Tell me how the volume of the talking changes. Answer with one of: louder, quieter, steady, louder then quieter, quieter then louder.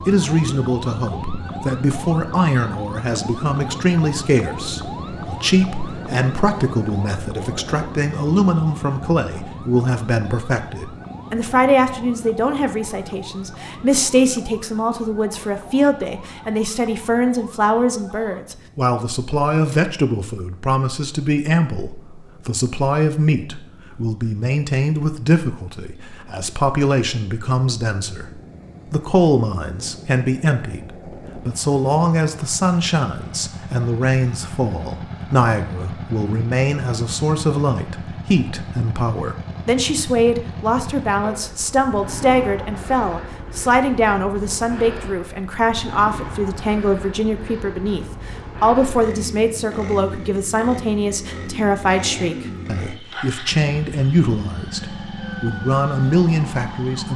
steady.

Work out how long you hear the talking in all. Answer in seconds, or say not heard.
57 s.